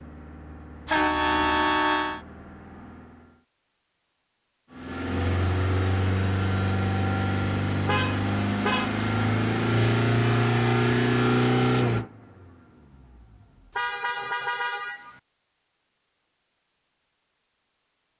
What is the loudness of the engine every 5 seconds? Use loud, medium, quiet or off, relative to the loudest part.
quiet, loud, loud, off.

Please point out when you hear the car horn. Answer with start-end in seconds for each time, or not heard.
0.8-2.2, 7.8-8.9, 13.8-15.2.